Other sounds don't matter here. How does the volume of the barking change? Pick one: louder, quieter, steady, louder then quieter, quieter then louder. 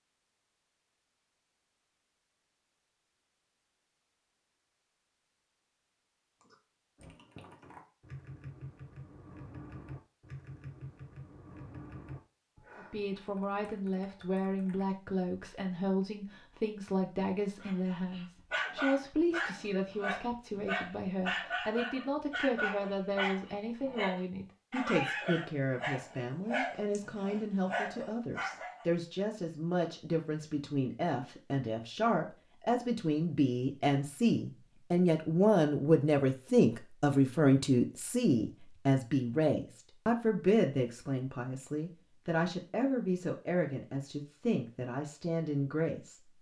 steady.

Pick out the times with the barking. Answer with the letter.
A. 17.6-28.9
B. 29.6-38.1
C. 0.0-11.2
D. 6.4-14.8
A.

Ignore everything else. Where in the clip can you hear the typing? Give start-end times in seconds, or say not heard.
6.4-14.8.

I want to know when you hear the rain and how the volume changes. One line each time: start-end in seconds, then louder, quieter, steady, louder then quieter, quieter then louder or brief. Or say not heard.
not heard.